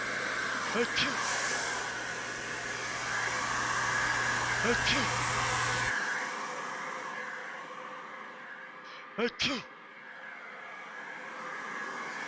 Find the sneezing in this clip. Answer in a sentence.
The sneezing can be heard from 0.6 to 1.2 s, from 4.5 to 5.1 s and from 8.8 to 9.7 s.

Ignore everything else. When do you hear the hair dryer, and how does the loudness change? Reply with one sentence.
The hair dryer can be heard from 0.0 to 12.2 s, getting quieter.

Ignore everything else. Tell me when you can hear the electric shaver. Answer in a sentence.
The electric shaver can be heard from 0.1 to 6.0 s.